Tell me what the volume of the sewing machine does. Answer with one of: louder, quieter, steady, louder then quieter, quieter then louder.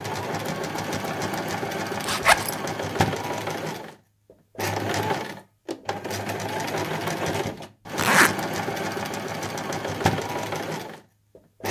steady.